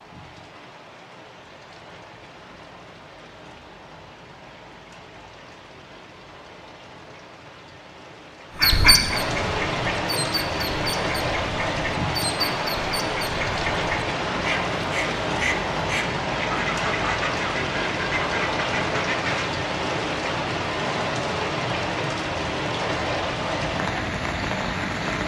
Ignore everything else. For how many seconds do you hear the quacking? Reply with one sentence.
You can hear the quacking for 11 seconds altogether.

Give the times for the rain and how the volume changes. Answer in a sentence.
You can hear the rain from 0.0 to 25.2 s, getting louder.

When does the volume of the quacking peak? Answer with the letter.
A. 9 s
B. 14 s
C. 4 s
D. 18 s
A.